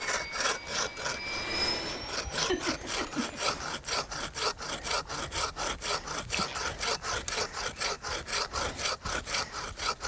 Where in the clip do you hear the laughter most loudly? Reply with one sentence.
The loudest moment of the laughter is at 3 seconds.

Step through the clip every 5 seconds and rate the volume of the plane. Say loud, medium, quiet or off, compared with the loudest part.
loud, off.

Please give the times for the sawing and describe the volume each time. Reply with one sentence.
You can hear the sawing from 0.0 to 10.0 s, at a steady volume.